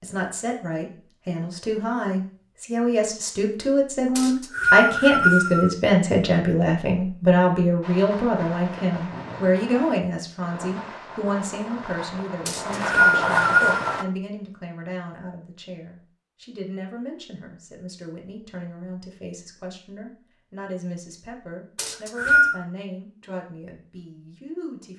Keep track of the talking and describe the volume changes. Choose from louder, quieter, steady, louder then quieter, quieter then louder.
quieter.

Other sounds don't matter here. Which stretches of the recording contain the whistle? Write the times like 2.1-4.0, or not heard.
4.2-5.7, 12.4-14.1, 21.8-22.6.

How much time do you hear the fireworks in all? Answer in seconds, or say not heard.
6 s.